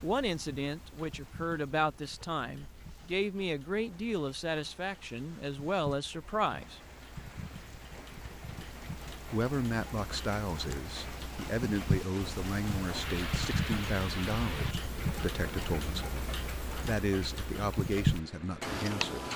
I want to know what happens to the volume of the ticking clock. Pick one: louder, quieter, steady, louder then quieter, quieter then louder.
louder.